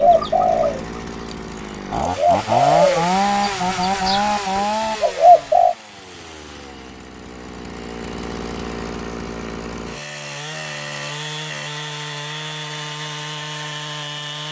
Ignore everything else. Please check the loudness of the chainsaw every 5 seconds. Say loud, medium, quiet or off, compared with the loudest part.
loud, medium, medium.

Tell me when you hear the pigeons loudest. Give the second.
5 s.